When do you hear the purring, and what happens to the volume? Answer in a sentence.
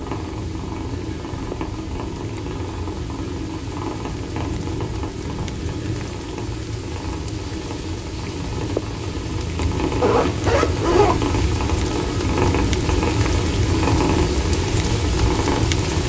The purring can be heard from 0.0 to 16.0 s, getting louder.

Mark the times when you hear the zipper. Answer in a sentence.
The zipper can be heard from 10.0 to 11.2 s.